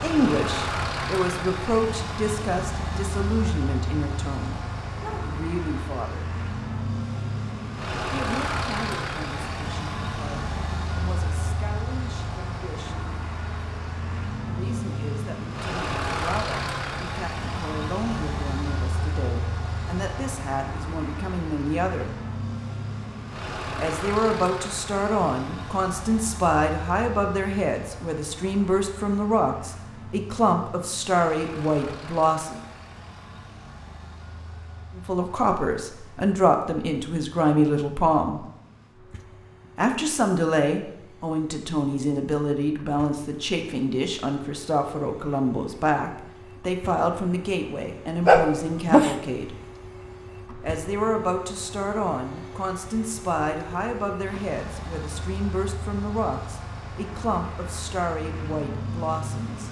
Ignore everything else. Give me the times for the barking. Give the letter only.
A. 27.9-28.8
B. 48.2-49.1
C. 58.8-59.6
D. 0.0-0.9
B.